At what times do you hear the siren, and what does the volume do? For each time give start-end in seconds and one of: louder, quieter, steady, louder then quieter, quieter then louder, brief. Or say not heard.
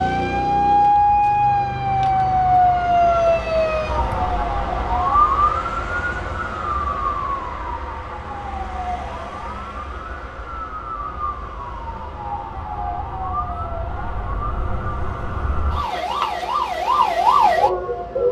0.0-18.2 quieter then louder.